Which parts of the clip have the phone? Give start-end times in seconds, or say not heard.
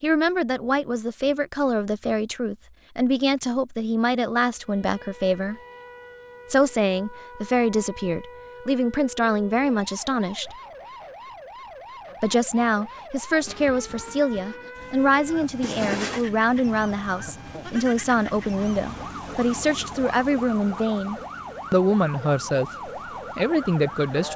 15.6-16.2.